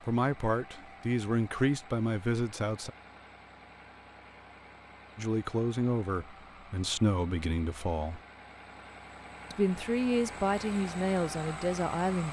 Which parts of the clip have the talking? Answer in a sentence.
The talking can be heard from 0.1 to 2.9 s, from 5.2 to 8.2 s and from 9.5 to 12.2 s.